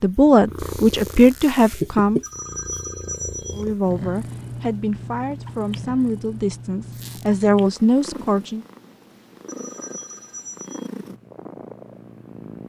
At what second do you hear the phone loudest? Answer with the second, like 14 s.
3 s.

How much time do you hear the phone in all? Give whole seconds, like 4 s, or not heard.
3 s.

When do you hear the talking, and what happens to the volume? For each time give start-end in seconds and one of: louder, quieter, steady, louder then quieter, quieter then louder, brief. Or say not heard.
0.0-2.2 brief
3.5-8.7 louder.